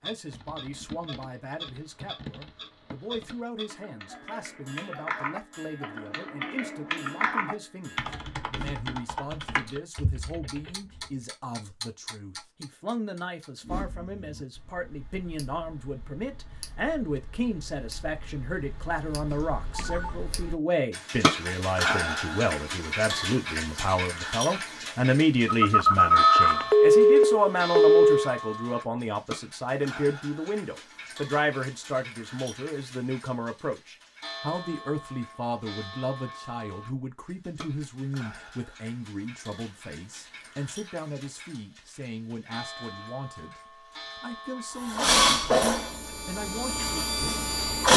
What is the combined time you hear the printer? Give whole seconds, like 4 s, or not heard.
3 s.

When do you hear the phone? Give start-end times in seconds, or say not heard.
19.3-20.1, 25.4-28.2.